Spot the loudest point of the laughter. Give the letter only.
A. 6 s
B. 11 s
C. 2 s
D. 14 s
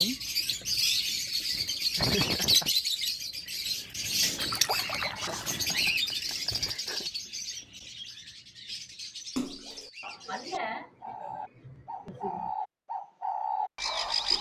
C.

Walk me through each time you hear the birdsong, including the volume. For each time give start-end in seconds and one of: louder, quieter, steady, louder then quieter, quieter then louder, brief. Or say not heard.
0.0-14.3 quieter then louder.